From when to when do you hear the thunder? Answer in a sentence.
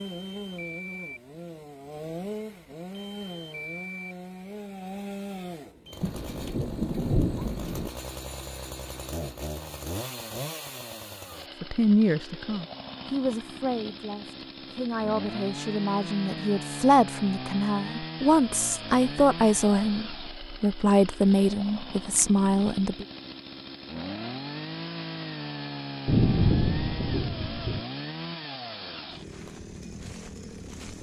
You can hear the thunder from 6.0 to 7.9 s and from 26.1 to 27.8 s.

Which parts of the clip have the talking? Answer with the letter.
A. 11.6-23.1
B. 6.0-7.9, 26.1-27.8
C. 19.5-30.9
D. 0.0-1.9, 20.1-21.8
A.